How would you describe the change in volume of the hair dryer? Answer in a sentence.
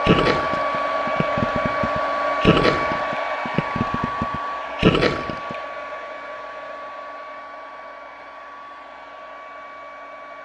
The loudness of the hair dryer goes down.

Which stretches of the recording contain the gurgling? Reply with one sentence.
The gurgling can be heard from 0.0 to 5.6 s.